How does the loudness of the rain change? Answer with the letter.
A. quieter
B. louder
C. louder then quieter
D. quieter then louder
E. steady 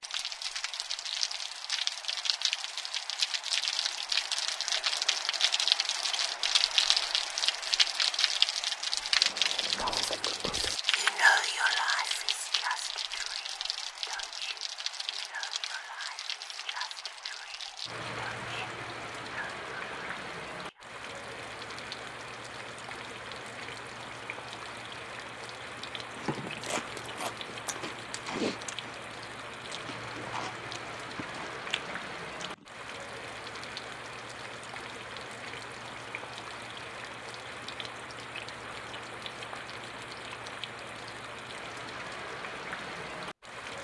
A.